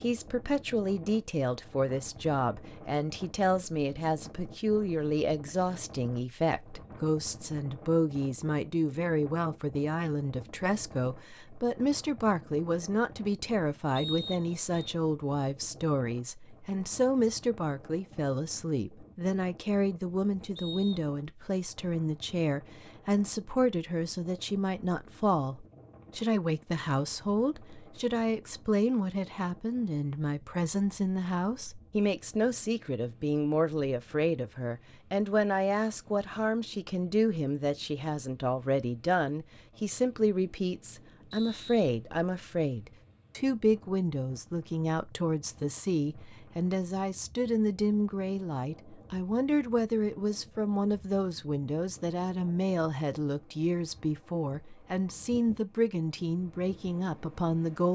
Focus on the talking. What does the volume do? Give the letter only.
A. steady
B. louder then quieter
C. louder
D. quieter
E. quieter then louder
A.